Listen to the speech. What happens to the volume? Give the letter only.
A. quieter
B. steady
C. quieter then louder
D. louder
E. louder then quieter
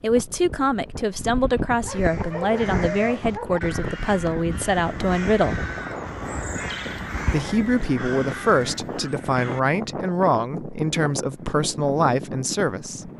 B.